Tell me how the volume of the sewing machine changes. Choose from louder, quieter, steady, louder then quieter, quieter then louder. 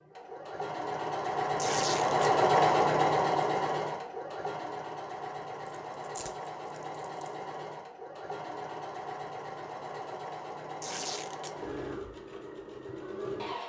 quieter.